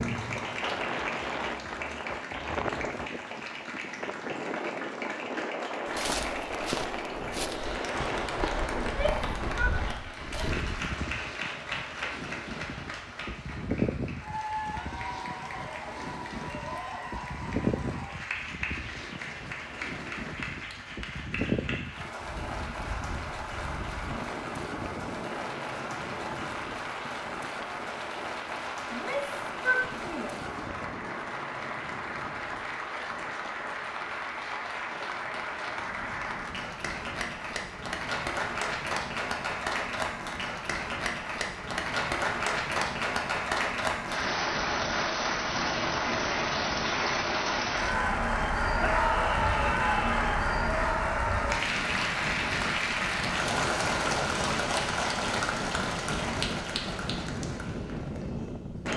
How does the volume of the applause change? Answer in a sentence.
The volume of the applause goes up.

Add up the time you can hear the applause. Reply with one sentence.
The applause can be heard for 59 seconds in total.